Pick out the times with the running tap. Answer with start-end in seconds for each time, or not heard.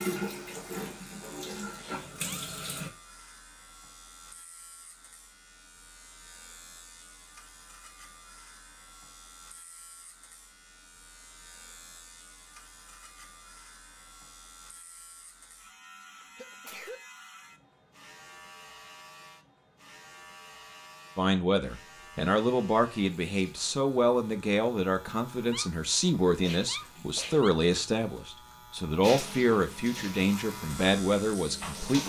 0.0-2.9, 29.0-32.0.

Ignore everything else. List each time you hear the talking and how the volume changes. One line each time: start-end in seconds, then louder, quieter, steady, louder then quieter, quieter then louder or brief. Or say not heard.
21.1-32.0 steady.